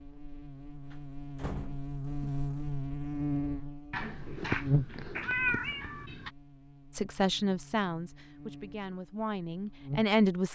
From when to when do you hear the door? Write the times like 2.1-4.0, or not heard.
0.9-2.4.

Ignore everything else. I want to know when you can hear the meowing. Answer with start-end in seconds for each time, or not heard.
3.9-6.3.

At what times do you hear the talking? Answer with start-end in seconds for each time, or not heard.
6.9-10.5.